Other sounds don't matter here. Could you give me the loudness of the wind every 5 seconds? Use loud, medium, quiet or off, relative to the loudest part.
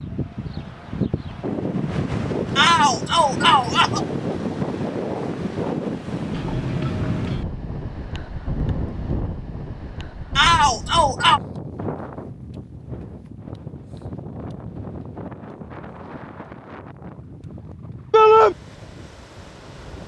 loud, loud, medium, quiet.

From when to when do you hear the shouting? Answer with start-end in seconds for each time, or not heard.
2.5-4.0, 10.3-11.4, 18.1-18.6.